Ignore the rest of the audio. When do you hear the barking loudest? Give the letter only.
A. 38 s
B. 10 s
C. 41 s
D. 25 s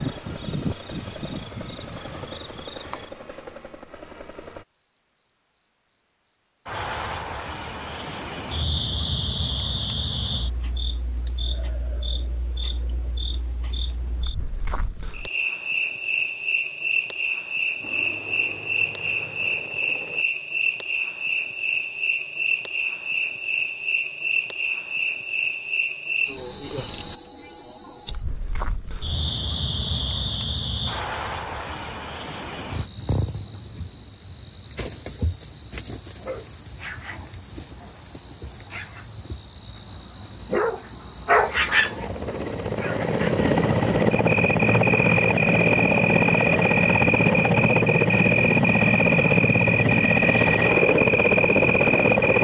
C.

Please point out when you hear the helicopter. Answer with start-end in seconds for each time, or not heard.
0.0-4.7, 17.8-20.2, 41.4-52.3.